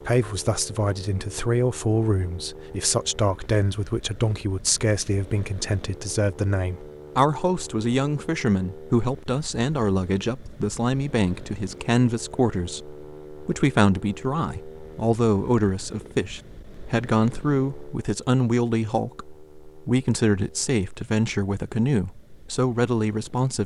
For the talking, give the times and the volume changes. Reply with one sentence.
You can hear the talking from 0.1 to 23.6 s, at a steady volume.